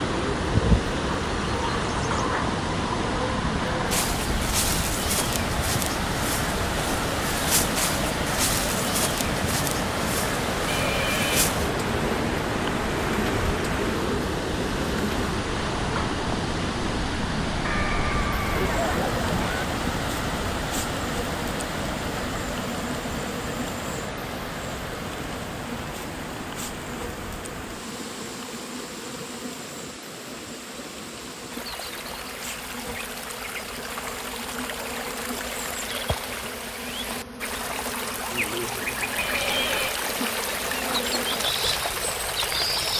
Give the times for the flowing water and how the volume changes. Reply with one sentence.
The flowing water can be heard from 0.0 to 42.9 s, getting quieter then louder.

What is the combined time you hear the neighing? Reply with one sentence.
The neighing can be heard for 4 seconds in total.